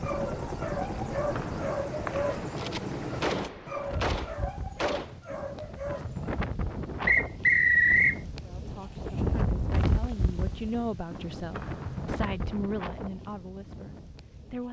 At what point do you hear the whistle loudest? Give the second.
8 s.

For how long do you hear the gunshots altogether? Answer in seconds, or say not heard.
3 s.